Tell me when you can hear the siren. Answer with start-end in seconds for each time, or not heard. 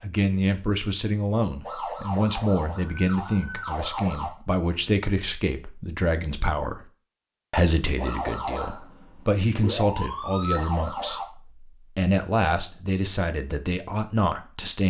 1.6-4.3, 8.0-11.2.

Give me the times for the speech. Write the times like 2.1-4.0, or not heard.
0.0-6.9, 7.5-14.8.